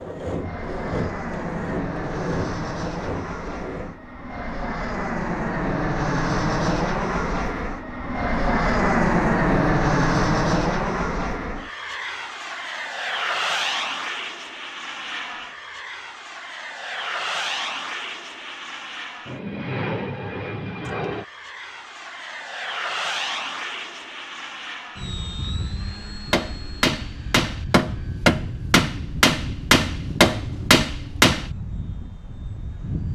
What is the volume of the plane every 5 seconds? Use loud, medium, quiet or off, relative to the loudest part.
medium, loud, loud, medium, medium, quiet, quiet.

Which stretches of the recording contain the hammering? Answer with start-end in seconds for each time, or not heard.
26.2-31.5.